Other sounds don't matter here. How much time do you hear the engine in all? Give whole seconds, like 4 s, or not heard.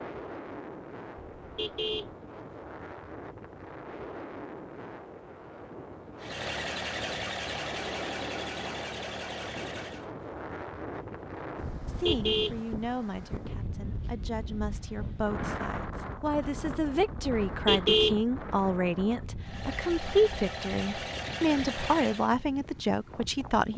7 s.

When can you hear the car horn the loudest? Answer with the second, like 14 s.
18 s.